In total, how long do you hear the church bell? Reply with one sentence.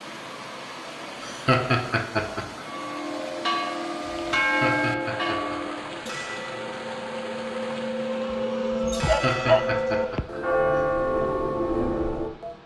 You can hear the church bell for 10 seconds altogether.